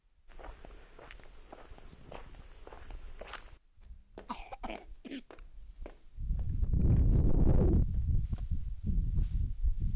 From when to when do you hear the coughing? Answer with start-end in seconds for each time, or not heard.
4.2-5.2.